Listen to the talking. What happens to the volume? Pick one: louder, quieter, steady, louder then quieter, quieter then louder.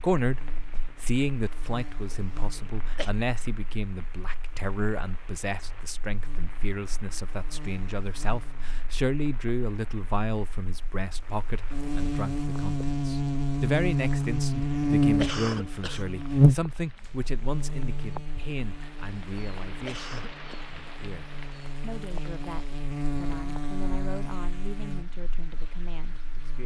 quieter.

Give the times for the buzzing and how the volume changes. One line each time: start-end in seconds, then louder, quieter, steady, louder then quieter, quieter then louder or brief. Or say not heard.
0.2-26.6 louder then quieter.